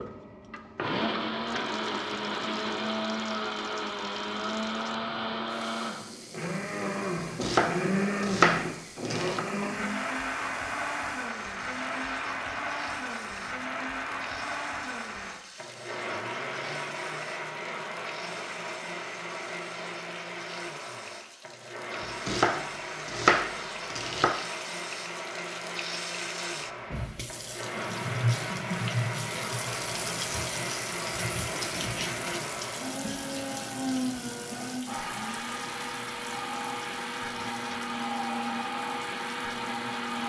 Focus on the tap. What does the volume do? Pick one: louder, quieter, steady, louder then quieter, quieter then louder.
louder then quieter.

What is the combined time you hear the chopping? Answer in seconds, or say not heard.
5 s.